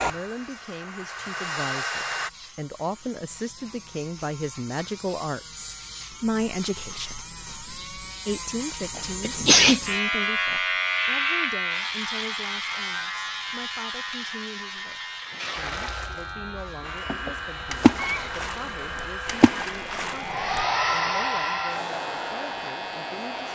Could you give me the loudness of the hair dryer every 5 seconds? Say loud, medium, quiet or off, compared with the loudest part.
loud, off, off, medium, loud.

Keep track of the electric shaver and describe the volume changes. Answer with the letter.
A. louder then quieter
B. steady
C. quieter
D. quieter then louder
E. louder
A.